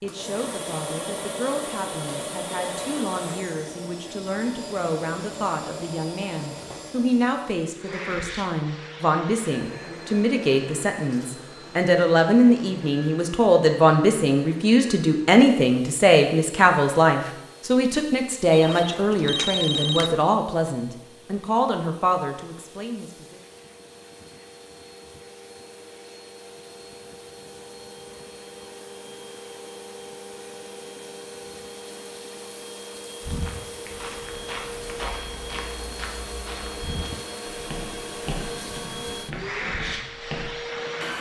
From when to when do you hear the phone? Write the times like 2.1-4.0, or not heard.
18.5-20.2.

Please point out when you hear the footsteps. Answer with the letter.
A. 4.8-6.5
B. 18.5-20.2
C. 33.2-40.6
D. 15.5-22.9
C.